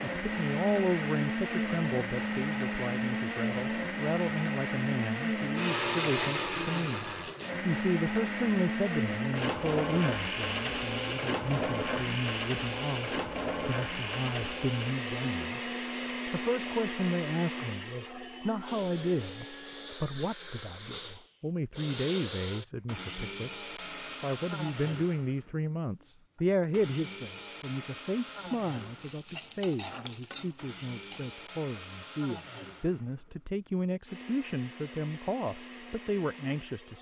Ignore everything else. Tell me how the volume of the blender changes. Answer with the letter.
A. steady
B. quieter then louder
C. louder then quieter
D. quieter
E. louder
D.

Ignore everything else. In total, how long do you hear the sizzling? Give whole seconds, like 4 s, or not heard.
3 s.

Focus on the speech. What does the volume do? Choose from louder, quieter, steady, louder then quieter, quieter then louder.
steady.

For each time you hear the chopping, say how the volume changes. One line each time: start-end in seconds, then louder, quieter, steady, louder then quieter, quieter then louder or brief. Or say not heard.
not heard.